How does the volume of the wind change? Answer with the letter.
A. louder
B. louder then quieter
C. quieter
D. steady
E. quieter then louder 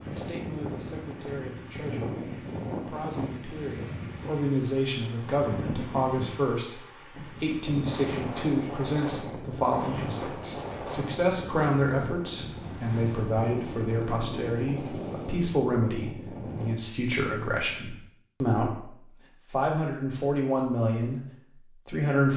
D.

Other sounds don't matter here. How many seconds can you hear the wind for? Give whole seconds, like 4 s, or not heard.
17 s.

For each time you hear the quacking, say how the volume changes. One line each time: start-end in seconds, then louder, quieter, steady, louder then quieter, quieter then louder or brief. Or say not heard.
not heard.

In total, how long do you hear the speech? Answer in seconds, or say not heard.
22 s.